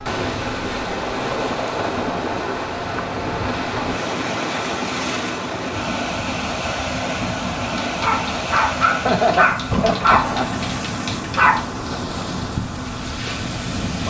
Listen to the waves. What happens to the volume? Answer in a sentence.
The volume of the waves stays about the same.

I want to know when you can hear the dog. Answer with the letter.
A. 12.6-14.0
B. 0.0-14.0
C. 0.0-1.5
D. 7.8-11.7
D.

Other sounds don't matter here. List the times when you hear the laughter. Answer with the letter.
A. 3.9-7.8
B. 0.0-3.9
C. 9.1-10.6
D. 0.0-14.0
C.